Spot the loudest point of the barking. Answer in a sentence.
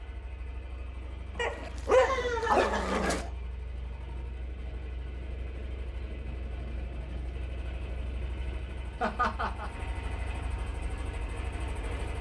The loudest moment of the barking is at 2 seconds.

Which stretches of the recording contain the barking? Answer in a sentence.
The barking can be heard from 1.4 to 3.2 s.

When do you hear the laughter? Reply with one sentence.
The laughter can be heard from 1.2 to 3.3 s and from 9.0 to 9.7 s.